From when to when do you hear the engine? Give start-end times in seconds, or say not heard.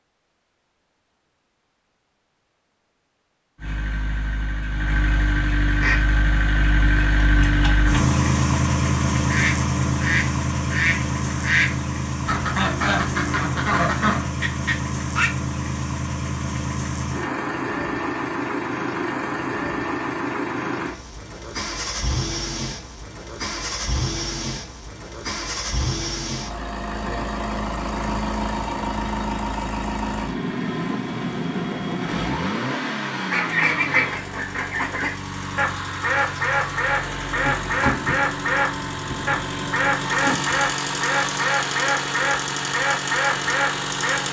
3.5-44.2.